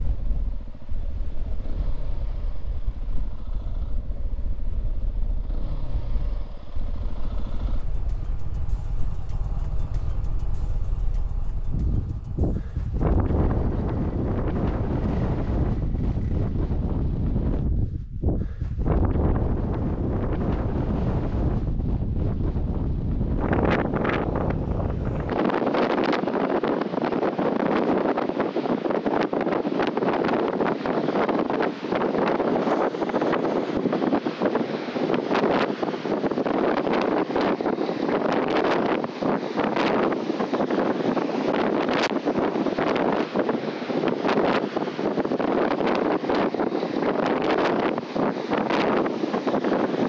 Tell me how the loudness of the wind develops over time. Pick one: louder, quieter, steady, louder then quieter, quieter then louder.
louder.